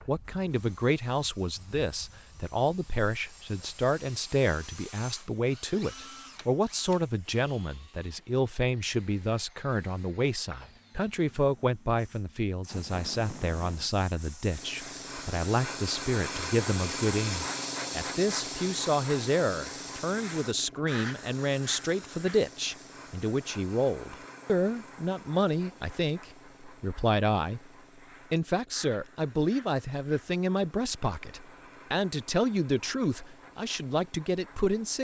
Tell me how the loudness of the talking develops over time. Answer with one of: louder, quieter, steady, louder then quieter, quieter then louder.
steady.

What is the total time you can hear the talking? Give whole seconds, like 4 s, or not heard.
34 s.